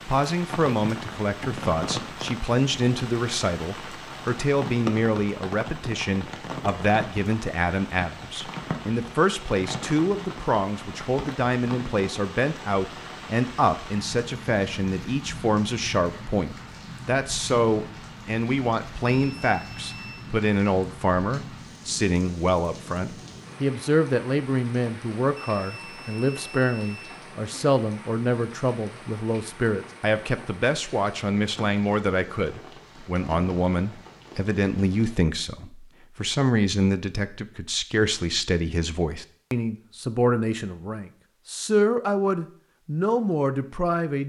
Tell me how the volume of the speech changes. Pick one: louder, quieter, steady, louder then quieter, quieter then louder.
steady.